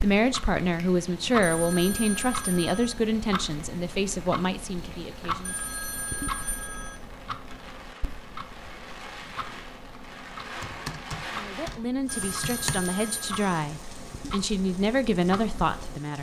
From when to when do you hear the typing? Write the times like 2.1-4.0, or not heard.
10.6-12.9.